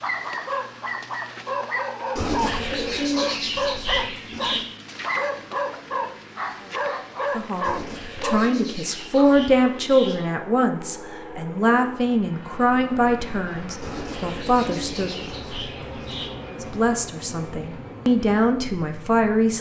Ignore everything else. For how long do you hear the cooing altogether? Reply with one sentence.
You can hear the cooing for 8 seconds altogether.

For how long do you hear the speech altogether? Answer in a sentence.
You can hear the speech for 11 seconds altogether.